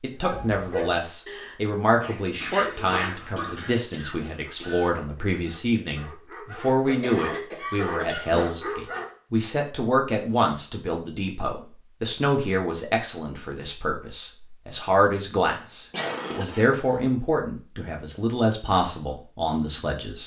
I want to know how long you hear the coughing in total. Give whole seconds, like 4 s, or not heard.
5 s.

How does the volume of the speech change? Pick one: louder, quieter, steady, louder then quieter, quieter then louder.
steady.